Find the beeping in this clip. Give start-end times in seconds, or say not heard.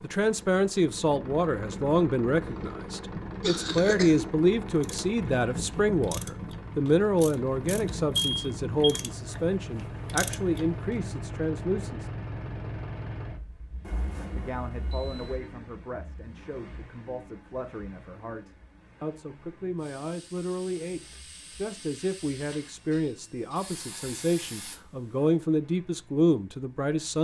8.2-9.0, 13.8-15.4.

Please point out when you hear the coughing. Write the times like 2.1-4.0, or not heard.
2.4-4.2.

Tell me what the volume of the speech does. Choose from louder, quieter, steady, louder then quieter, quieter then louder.
quieter then louder.